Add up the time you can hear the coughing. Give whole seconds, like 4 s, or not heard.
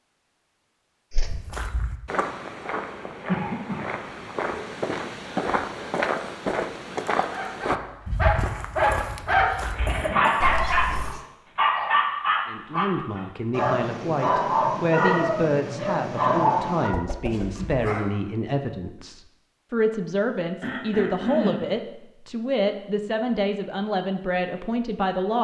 4 s.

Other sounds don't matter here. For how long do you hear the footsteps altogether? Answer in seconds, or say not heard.
10 s.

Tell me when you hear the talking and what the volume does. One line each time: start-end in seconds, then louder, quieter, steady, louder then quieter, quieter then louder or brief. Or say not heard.
12.4-25.3 steady.